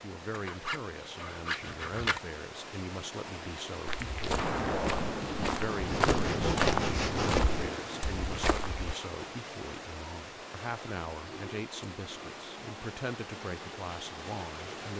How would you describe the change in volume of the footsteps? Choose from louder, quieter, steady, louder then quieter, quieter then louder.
louder then quieter.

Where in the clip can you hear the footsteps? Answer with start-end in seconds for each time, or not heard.
3.9-8.9.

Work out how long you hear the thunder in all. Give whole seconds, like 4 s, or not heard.
4 s.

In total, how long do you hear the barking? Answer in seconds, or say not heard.
not heard.